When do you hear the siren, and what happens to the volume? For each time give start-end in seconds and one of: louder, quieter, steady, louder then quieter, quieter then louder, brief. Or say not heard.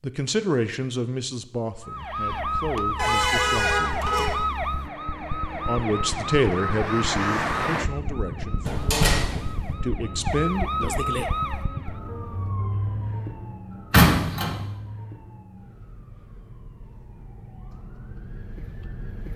1.8-19.3 quieter.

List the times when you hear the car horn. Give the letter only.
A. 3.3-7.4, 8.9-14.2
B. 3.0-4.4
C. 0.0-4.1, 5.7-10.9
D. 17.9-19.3
B.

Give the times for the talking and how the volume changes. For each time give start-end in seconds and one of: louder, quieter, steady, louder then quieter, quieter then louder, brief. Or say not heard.
0.0-4.1 quieter then louder
5.7-10.9 quieter then louder.